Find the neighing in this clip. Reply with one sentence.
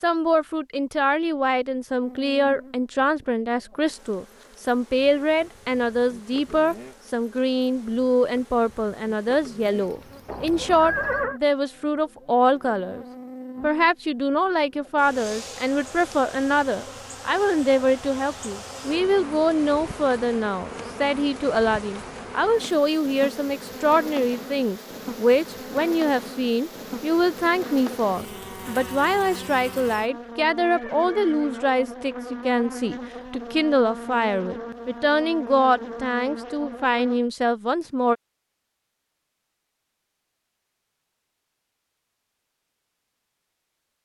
The neighing can be heard from 10.2 to 11.4 s and from 30.6 to 31.6 s.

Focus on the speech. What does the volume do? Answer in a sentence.
The volume of the speech stays about the same.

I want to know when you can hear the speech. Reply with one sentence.
You can hear the speech from 0.0 to 38.1 s.